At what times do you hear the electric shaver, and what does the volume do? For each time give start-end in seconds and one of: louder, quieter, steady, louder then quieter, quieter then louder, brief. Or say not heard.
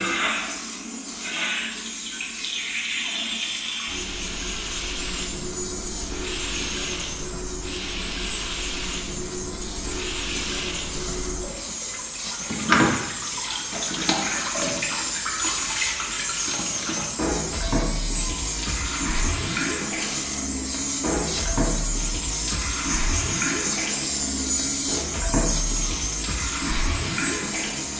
0.0-27.9 louder.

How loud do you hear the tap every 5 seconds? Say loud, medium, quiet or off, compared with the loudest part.
loud, medium, loud, loud, loud, loud.